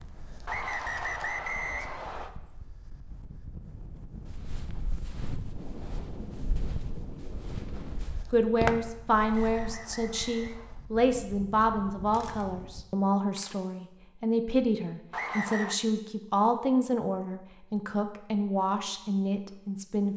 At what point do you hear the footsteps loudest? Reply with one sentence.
The loudest moment of the footsteps is at 9 seconds.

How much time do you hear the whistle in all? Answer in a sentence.
You can hear the whistle for 4 seconds altogether.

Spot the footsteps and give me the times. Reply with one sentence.
You can hear the footsteps from 4.0 to 9.8 s.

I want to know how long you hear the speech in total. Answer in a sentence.
You can hear the speech for 12 seconds altogether.